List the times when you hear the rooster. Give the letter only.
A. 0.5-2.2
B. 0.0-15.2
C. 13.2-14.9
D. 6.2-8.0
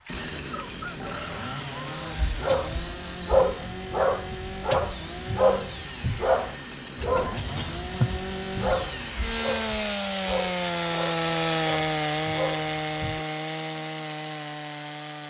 A.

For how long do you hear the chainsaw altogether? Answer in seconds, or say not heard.
15 s.